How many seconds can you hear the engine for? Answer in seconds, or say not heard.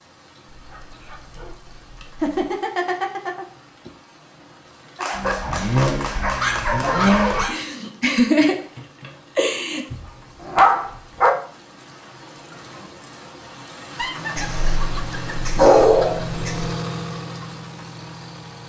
7 s.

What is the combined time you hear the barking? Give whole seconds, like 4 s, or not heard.
8 s.